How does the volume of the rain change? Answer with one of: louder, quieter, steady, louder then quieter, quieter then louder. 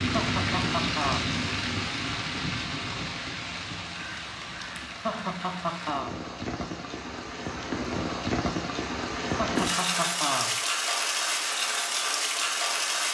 quieter then louder.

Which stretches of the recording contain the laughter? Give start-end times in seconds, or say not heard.
0.1-1.2, 5.0-6.2, 9.3-10.6.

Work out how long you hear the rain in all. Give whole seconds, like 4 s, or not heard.
13 s.